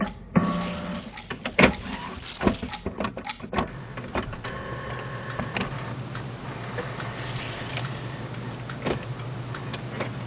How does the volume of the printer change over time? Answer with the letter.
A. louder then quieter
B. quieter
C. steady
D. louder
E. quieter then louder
B.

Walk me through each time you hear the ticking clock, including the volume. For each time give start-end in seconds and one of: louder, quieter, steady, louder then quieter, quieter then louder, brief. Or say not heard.
0.0-10.2 louder.